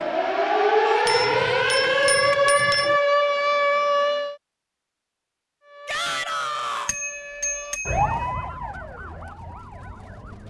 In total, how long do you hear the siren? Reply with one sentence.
You can hear the siren for 9 seconds altogether.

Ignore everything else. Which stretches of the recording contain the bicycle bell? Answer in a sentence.
The bicycle bell can be heard from 1.1 to 3.0 s and from 6.8 to 8.2 s.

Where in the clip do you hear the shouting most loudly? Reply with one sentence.
The loudest moment of the shouting is at 6 seconds.